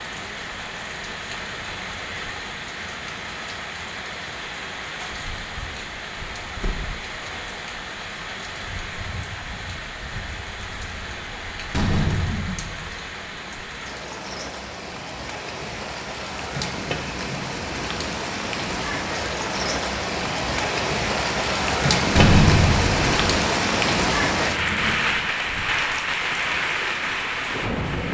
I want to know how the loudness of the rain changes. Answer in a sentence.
The loudness of the rain goes up.